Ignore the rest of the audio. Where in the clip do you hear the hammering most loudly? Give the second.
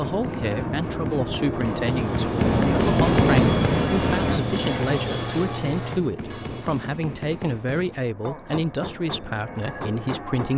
3 s.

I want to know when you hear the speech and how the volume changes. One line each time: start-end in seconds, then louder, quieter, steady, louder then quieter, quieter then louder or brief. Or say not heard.
0.0-10.5 steady.